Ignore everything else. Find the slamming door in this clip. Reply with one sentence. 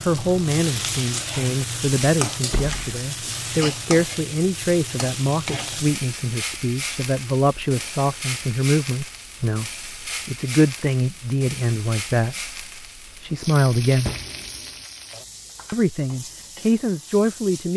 The slamming door can be heard from 2.5 to 3.0 s and from 14.1 to 14.7 s.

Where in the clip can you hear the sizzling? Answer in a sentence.
You can hear the sizzling from 0.0 to 17.7 s.